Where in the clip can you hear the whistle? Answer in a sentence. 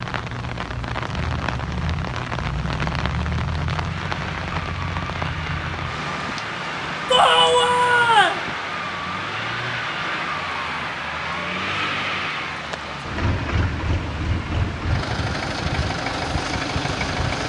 The whistle can't be heard in this clip.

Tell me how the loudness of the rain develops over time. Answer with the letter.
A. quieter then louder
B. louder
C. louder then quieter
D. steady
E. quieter
E.